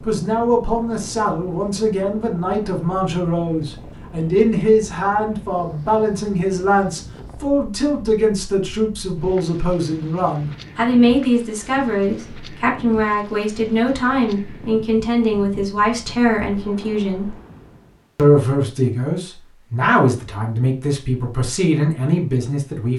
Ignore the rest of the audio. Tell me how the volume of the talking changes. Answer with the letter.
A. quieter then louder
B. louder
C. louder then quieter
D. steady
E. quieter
D.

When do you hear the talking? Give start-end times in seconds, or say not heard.
0.0-17.4, 18.1-22.9.